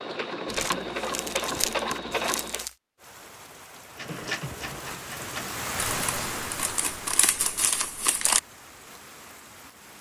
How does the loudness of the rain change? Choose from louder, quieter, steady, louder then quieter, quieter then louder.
louder then quieter.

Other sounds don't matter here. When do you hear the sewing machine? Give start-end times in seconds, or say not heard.
0.0-2.6, 4.0-6.4.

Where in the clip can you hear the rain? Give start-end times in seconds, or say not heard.
3.0-9.9.